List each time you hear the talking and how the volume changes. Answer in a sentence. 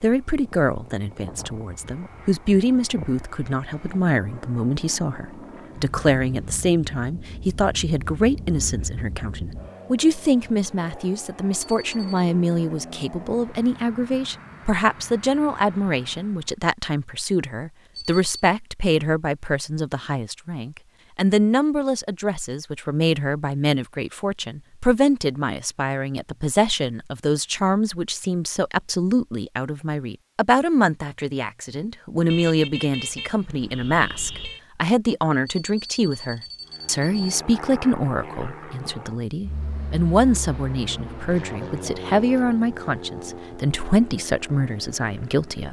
The talking can be heard from 0.0 to 45.6 s, at a steady volume.